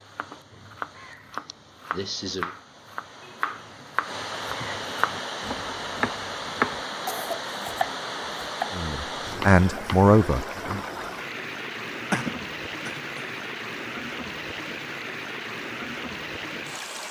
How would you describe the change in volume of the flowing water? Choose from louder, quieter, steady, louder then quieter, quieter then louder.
louder.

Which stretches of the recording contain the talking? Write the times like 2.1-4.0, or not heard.
8.7-10.8.